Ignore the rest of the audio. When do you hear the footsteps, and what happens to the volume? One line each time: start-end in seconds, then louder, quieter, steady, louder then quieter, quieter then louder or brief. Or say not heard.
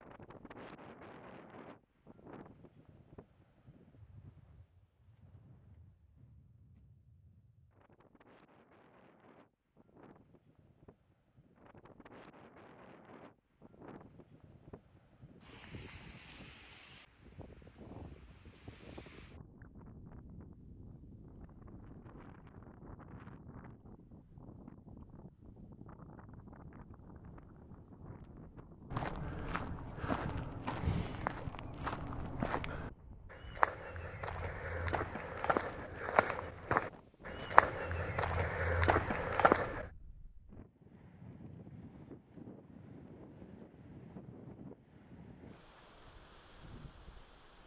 28.9-39.9 louder.